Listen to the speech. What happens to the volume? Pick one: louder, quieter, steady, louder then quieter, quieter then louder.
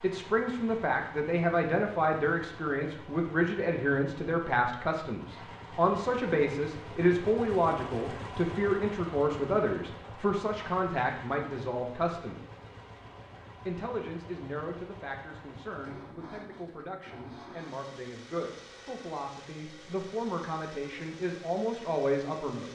quieter then louder.